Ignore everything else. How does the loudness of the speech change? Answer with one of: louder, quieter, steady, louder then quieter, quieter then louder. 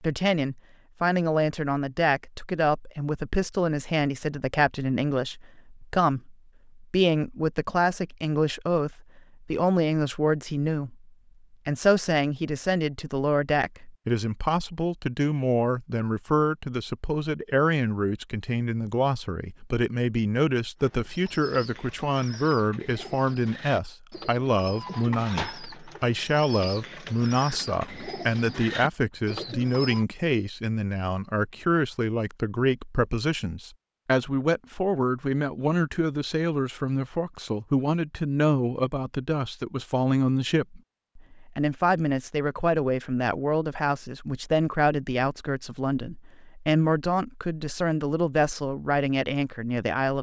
steady.